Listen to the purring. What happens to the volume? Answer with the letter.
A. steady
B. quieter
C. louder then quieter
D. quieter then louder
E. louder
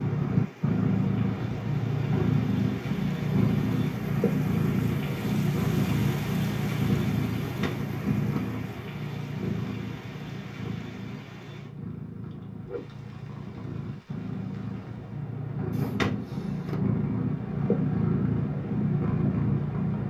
D.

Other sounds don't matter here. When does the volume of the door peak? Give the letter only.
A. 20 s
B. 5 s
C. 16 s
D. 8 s
C.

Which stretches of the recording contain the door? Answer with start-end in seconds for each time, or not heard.
7.4-8.4, 15.7-16.8.